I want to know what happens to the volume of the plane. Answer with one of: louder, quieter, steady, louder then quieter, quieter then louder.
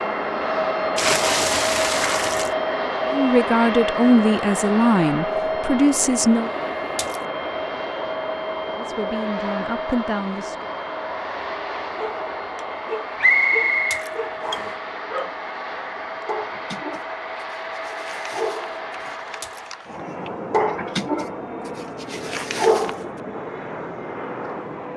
quieter.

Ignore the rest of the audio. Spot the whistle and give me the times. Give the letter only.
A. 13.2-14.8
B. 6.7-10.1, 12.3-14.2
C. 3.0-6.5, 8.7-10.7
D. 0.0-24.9
A.